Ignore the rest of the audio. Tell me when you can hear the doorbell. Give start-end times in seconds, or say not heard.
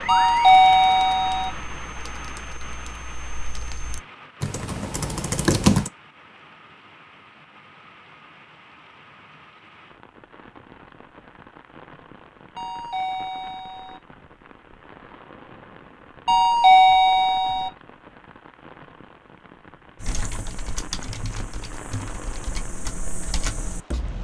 0.1-1.5, 12.6-14.0, 16.2-17.7.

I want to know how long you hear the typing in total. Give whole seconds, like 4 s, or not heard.
10 s.